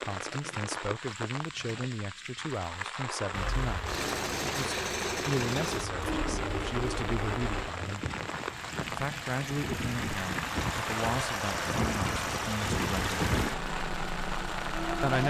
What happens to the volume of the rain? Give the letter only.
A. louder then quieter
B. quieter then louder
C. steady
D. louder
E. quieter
C.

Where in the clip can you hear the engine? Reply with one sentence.
The engine can be heard from 3.3 to 15.2 s.